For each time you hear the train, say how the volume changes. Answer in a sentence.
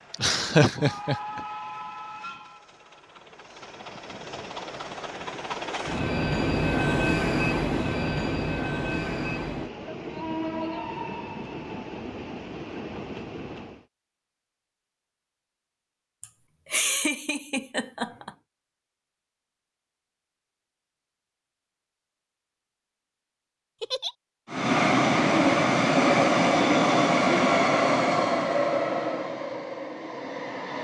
You can hear the train from 0.0 to 13.8 s, getting louder then quieter; and from 24.5 to 30.7 s, getting quieter.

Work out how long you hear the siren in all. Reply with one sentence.
You can't hear the siren here.